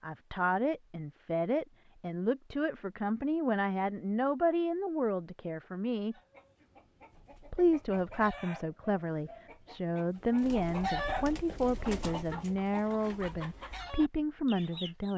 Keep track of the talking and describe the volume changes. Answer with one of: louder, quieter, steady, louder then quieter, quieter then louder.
steady.